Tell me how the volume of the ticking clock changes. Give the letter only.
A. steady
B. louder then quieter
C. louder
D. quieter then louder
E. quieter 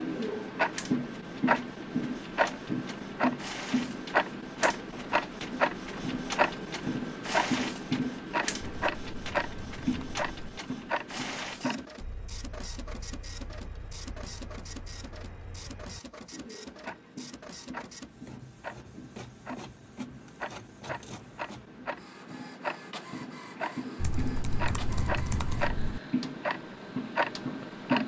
D.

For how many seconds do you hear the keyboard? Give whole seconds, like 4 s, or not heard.
4 s.